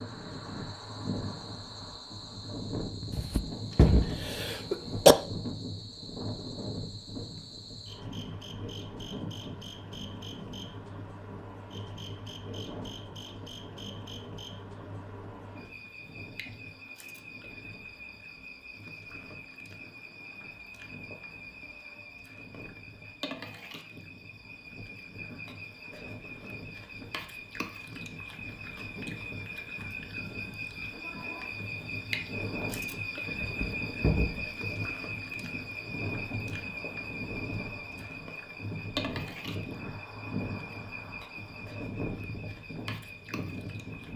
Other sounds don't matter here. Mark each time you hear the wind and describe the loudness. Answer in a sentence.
The wind can be heard from 0.0 to 44.1 s, getting quieter then louder.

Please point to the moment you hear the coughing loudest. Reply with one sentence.
The volume of the coughing peaks at 5 seconds.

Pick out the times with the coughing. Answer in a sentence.
The coughing can be heard from 3.1 to 5.2 s and from 33.4 to 34.5 s.